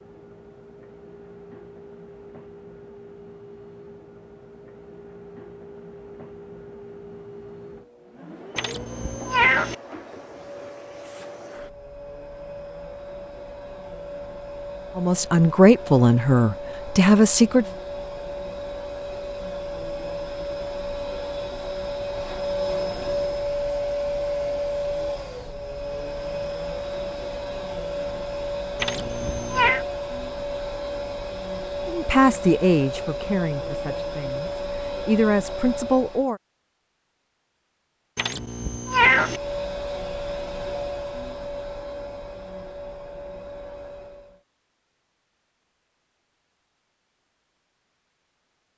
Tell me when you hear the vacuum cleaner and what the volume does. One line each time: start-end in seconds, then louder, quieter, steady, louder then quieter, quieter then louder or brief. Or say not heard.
0.0-36.4 louder
39.1-44.4 quieter.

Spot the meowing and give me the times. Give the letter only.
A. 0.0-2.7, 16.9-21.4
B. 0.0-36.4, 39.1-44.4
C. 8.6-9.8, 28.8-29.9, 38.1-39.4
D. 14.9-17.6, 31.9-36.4
C.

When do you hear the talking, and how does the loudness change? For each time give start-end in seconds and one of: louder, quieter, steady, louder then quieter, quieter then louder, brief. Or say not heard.
14.9-17.6 brief
31.9-36.4 quieter then louder.